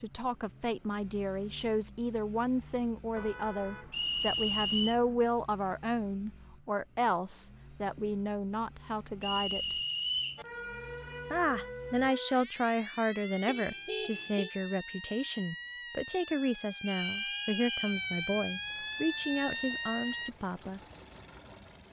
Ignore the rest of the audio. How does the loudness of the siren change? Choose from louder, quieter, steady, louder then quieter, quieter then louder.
louder.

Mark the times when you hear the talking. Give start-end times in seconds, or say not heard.
0.0-9.8, 11.3-20.8.